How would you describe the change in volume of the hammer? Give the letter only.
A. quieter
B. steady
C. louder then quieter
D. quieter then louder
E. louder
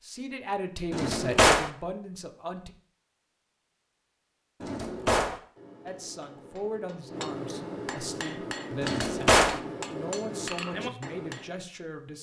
E.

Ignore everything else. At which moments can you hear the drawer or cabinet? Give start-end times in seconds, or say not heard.
0.9-1.7, 4.6-5.4, 8.8-9.6.